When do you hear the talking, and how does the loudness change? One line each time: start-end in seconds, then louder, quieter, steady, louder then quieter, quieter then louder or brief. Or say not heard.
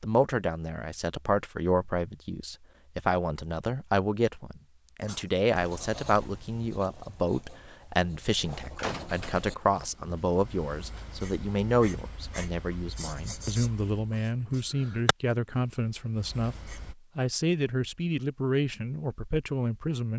0.0-20.1 steady.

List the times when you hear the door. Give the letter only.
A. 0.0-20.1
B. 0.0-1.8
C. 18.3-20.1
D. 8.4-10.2
D.